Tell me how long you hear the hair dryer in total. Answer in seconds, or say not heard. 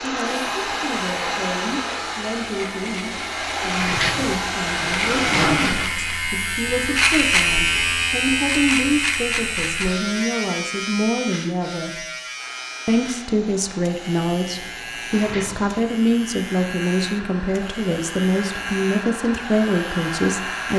14 s.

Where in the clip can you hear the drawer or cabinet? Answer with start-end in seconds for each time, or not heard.
3.8-6.2, 15.1-15.8.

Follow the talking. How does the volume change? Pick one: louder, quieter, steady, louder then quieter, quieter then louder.
louder.